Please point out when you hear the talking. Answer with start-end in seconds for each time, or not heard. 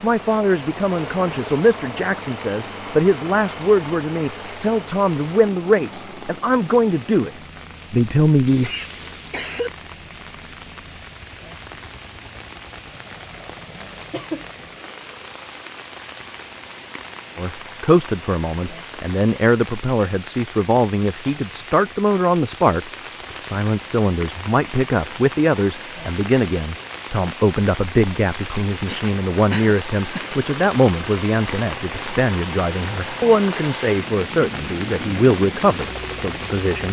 0.0-7.3, 7.9-8.7, 17.4-36.8.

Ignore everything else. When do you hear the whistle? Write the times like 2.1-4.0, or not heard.
not heard.